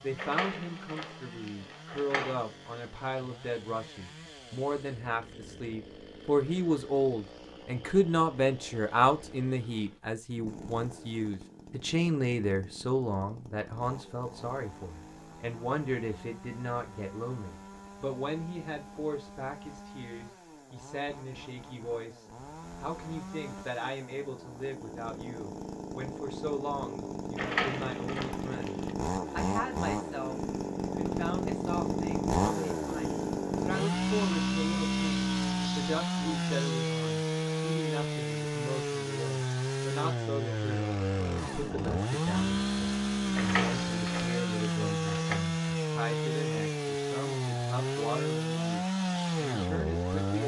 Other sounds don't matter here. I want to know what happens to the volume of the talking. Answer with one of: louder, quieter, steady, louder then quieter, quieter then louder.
quieter.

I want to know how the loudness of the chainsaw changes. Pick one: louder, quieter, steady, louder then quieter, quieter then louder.
louder.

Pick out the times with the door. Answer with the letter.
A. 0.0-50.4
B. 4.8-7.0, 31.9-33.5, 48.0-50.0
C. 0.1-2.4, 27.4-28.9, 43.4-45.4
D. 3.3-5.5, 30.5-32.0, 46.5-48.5
C.